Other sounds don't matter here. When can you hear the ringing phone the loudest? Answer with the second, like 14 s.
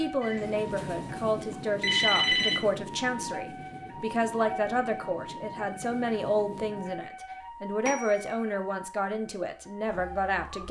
2 s.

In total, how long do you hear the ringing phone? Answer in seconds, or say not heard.
3 s.